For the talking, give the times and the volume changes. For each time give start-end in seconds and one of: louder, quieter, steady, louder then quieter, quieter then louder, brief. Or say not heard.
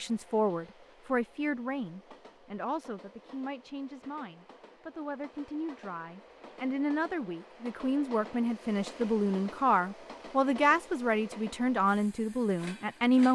0.0-13.3 quieter then louder.